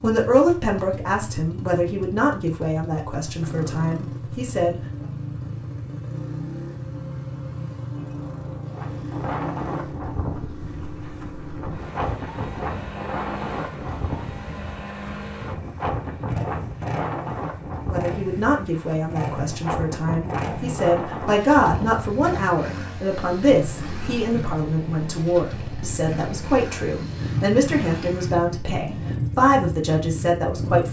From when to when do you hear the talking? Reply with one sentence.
The talking can be heard from 0.0 to 4.8 s and from 17.9 to 30.8 s.